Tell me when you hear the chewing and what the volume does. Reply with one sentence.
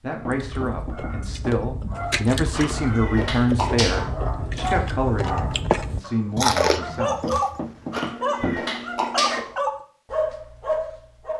The chewing can be heard from 0.3 to 8.1 s, getting louder.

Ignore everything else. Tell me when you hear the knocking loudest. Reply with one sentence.
The volume of the knocking peaks at 8 seconds.